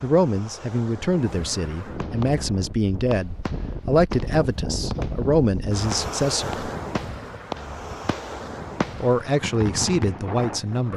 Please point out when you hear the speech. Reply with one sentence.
You can hear the speech from 0.0 to 6.7 s and from 9.0 to 10.9 s.